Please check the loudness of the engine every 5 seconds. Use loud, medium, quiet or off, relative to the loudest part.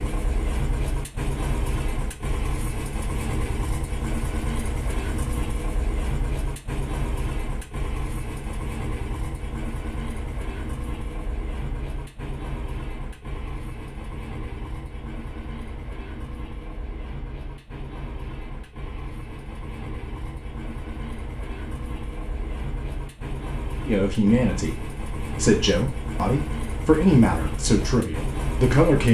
loud, loud, medium, medium, medium, loud.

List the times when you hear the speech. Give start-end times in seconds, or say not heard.
23.9-29.0.